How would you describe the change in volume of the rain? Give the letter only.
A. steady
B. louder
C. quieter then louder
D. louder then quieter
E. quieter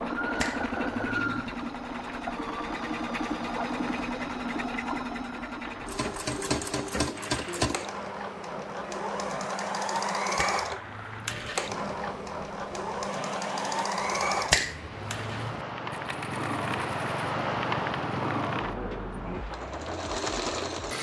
B.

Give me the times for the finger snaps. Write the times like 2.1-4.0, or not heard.
0.4-1.5, 10.3-11.5, 14.5-15.7.